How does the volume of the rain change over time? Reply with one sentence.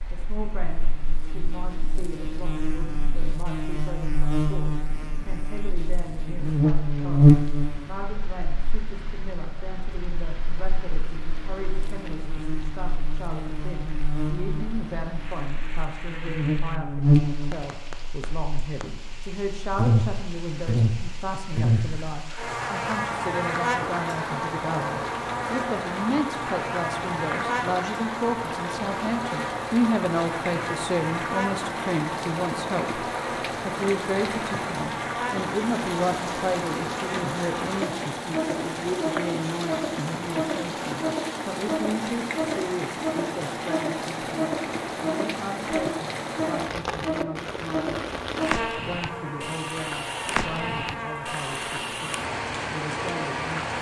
The volume of the rain goes up.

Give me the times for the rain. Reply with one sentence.
The rain can be heard from 0.0 to 53.7 s.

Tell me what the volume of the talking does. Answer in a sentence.
The volume of the talking goes up, then down.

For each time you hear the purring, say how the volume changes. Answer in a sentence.
You can't hear the purring here.